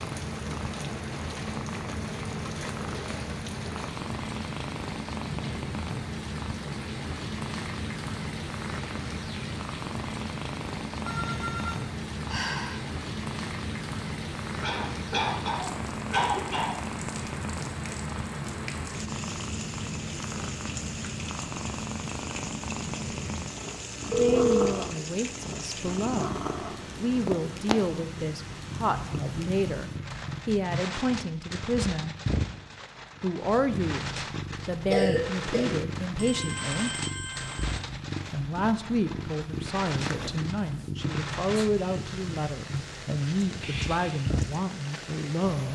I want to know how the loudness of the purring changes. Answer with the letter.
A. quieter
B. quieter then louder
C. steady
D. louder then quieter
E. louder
C.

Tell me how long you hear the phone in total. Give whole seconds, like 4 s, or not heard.
4 s.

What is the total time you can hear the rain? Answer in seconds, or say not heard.
46 s.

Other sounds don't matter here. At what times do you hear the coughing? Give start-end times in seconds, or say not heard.
14.6-16.8, 34.5-35.8.